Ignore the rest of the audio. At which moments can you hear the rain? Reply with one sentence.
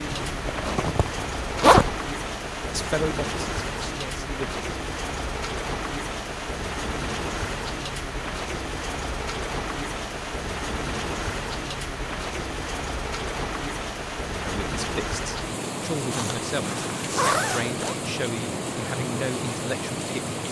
You can hear the rain from 0.0 to 20.4 s.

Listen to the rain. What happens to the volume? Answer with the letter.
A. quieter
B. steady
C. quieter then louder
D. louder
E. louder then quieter
B.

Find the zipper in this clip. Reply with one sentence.
The zipper can be heard from 0.1 to 1.9 s and from 16.1 to 17.9 s.